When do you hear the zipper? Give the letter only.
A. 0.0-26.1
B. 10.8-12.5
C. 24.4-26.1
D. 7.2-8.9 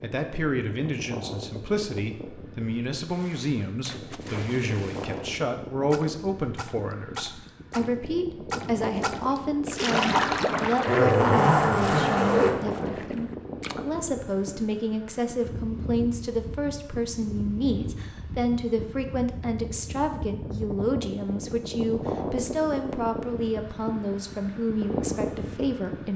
B.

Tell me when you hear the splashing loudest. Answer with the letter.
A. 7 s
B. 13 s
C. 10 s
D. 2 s
C.